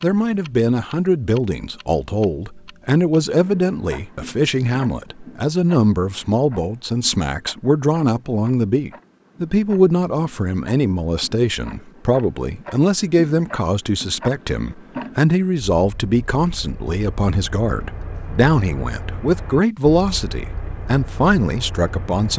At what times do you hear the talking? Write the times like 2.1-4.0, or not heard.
0.0-22.3.